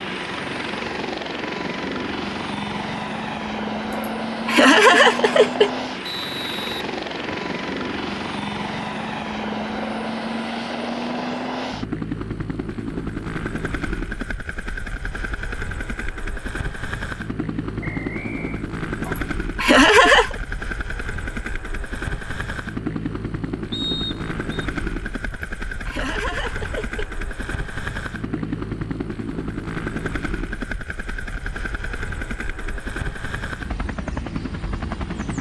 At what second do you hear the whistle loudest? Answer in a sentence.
The volume of the whistle peaks at 24 seconds.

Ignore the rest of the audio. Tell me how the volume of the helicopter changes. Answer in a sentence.
The loudness of the helicopter stays about the same.